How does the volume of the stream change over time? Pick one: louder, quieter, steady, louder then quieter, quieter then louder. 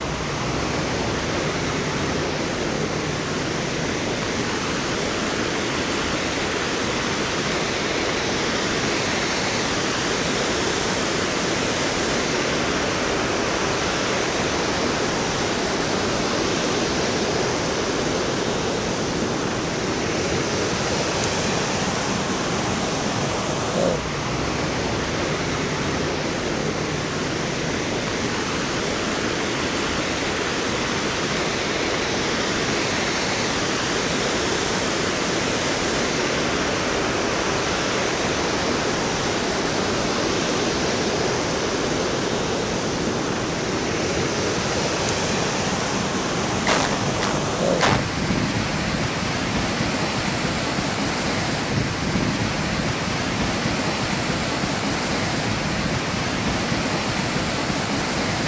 steady.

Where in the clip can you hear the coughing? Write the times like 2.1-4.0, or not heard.
46.6-48.0.